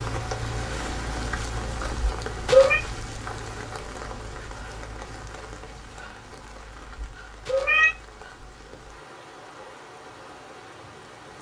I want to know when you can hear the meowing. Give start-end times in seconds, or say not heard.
1.8-2.8, 6.8-8.0.